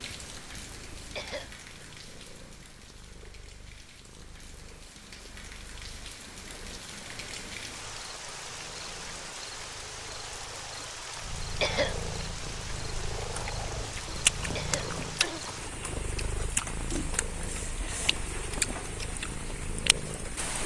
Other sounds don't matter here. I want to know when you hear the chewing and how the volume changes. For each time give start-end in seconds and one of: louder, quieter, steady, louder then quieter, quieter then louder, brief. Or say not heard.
13.3-20.1 quieter then louder.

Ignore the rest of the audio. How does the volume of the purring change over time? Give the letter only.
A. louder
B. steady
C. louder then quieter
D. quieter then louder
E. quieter
A.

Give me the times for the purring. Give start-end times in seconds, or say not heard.
0.0-20.6.